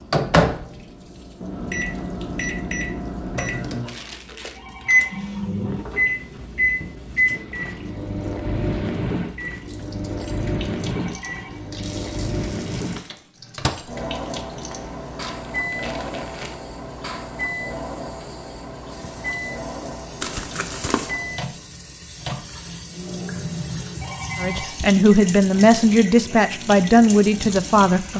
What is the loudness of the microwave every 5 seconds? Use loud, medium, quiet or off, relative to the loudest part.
loud, loud, medium, medium, medium, quiet.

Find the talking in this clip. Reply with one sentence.
You can hear the talking from 24.4 to 28.1 s.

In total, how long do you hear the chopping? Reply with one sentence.
You can't hear the chopping here.